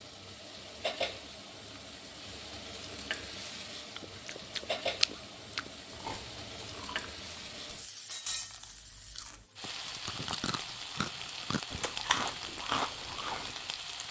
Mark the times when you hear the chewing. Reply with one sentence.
You can hear the chewing from 4.0 to 13.6 s.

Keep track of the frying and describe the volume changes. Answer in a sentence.
The loudness of the frying stays about the same.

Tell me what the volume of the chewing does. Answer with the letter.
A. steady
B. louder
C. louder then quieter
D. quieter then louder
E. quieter
D.